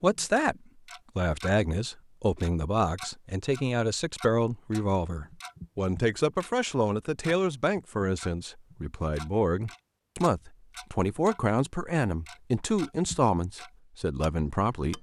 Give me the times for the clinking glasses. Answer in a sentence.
The clinking glasses can't be heard in this clip.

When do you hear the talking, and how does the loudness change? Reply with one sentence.
The talking can be heard briefly from 0.0 to 0.6 s; and from 1.1 to 14.9 s, at a steady volume.